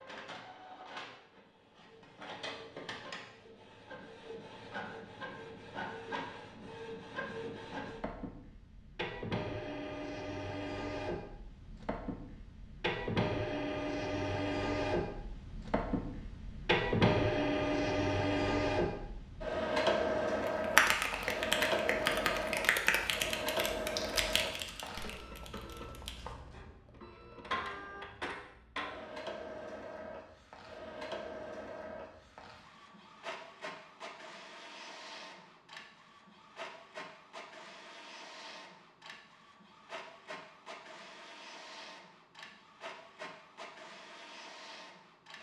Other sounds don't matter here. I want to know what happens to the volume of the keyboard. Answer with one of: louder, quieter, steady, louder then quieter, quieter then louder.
quieter.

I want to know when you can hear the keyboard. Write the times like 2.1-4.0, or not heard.
20.4-26.2.